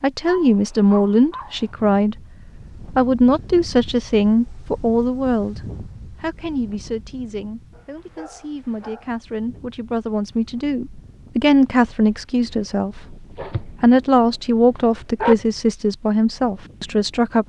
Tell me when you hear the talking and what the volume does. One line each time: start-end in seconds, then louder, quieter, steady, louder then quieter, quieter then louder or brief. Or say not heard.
0.0-2.1 brief
3.0-17.4 quieter then louder.